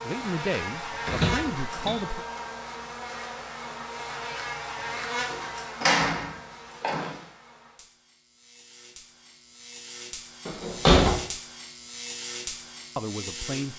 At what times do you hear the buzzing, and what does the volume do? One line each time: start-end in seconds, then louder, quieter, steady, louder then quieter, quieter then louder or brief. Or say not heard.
0.0-13.7 quieter then louder.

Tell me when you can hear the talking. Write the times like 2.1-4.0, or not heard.
0.0-2.2, 12.9-13.7.